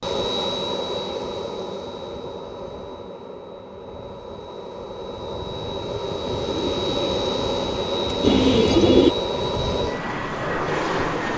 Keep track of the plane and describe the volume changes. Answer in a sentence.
The loudness of the plane goes down, then up.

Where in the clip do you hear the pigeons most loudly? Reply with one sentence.
The volume of the pigeons peaks at 9 seconds.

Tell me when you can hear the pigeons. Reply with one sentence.
The pigeons can be heard from 6.2 to 9.2 s.